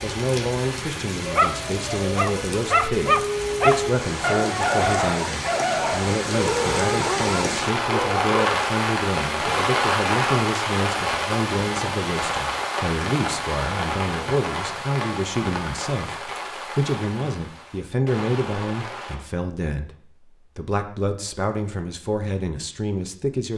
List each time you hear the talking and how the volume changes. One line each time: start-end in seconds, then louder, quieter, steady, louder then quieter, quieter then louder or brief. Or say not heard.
0.0-23.5 steady.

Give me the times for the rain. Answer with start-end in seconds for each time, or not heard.
0.0-19.2.